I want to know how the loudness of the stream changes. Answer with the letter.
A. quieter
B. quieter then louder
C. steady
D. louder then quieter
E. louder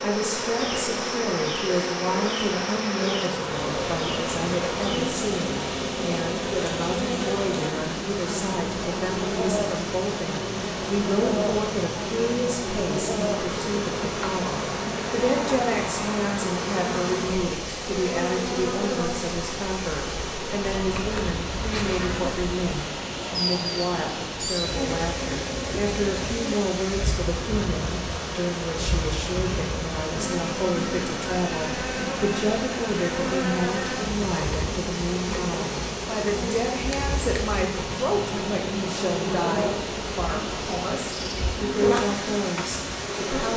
C.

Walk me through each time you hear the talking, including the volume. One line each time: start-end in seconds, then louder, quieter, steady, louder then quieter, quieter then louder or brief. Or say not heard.
0.0-43.5 steady.